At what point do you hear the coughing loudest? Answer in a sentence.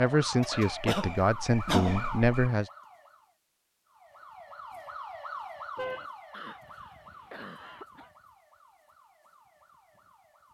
The volume of the coughing peaks at 2 seconds.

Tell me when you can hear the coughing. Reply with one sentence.
You can hear the coughing from 0.5 to 2.5 s and from 6.3 to 8.1 s.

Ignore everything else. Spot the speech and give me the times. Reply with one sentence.
You can hear the speech from 0.0 to 2.7 s.